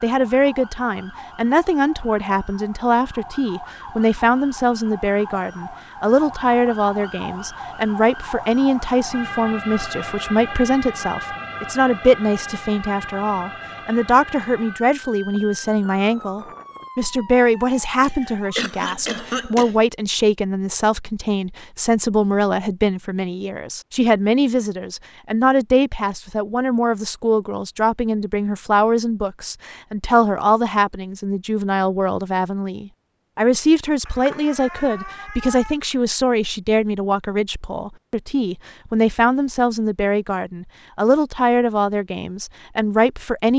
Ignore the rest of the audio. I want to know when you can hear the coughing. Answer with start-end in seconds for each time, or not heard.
18.0-19.8.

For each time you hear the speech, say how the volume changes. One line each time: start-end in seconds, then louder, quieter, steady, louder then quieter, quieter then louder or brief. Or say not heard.
0.0-43.5 steady.